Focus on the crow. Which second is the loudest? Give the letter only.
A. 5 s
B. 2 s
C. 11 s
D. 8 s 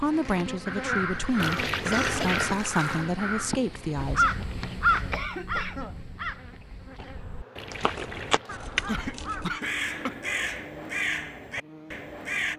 A.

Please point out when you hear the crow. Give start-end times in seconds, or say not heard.
0.7-12.5.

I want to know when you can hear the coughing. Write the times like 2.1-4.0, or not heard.
0.9-2.5, 4.9-6.0, 8.4-10.2.